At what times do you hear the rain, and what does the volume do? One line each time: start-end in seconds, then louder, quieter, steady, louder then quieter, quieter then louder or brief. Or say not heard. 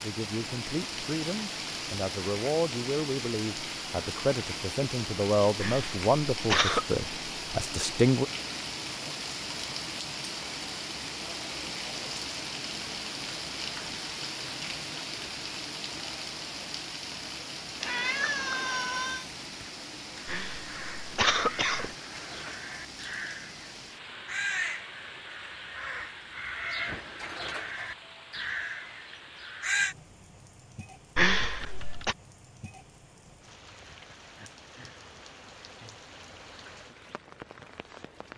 0.0-38.3 quieter.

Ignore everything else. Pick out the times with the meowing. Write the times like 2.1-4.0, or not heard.
17.8-19.2.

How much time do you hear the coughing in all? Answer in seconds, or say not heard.
4 s.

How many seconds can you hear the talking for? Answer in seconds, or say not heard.
8 s.